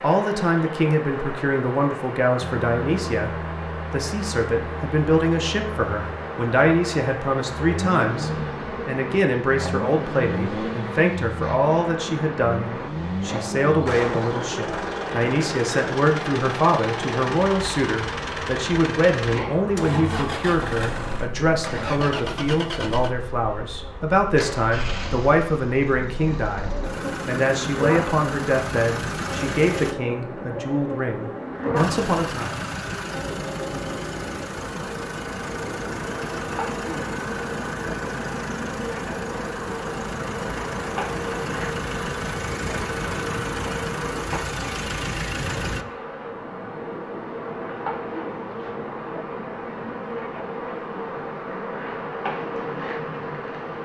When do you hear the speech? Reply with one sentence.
You can hear the speech from 0.0 to 32.5 s.